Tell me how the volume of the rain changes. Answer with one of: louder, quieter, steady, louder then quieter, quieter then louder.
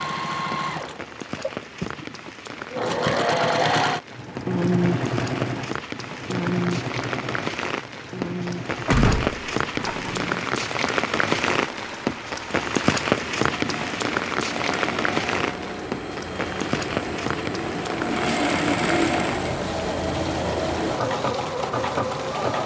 louder then quieter.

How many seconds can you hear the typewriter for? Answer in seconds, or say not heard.
not heard.